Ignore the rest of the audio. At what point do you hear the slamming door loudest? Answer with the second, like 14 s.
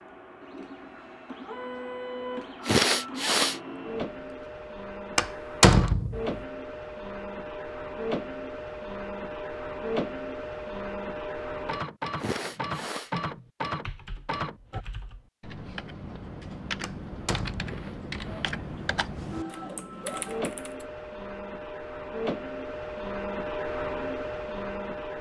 6 s.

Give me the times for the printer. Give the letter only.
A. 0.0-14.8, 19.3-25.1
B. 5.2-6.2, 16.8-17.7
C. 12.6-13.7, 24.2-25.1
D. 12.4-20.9
A.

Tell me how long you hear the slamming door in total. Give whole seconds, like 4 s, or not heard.
2 s.